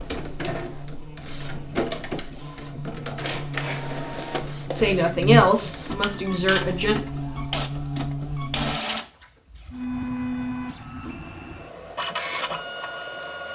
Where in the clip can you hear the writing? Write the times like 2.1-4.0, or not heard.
not heard.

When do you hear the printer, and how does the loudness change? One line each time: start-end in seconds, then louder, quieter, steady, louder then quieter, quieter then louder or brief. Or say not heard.
0.0-13.5 steady.